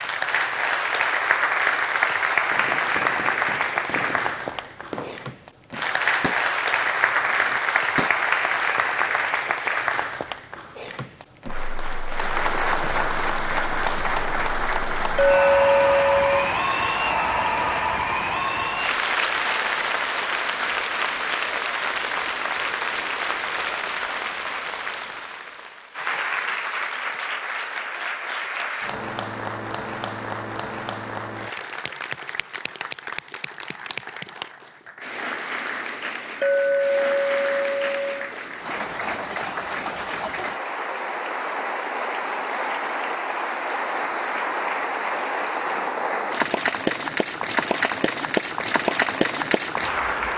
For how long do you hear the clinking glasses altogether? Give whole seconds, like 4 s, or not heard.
3 s.